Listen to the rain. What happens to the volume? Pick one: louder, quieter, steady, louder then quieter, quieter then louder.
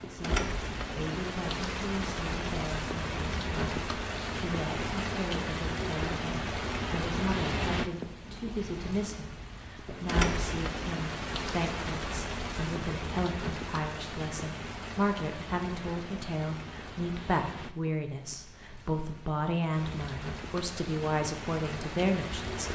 quieter.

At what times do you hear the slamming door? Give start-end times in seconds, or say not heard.
not heard.